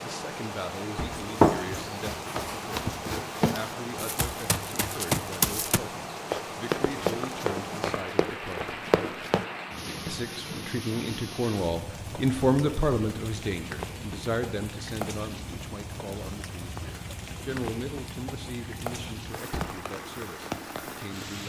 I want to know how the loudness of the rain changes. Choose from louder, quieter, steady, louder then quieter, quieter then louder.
steady.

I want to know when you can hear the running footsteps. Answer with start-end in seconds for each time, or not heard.
1.1-9.4.